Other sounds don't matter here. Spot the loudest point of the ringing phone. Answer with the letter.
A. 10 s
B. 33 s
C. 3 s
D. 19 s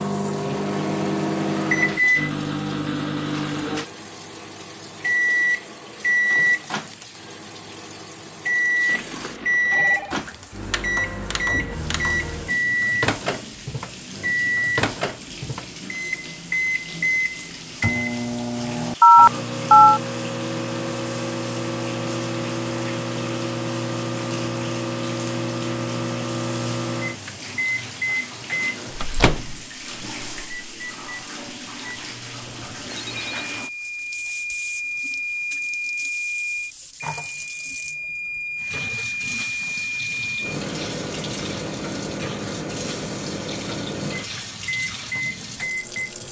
D.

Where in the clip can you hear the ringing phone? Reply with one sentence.
The ringing phone can be heard from 8.8 to 10.2 s, from 19.0 to 20.0 s and from 32.5 to 33.5 s.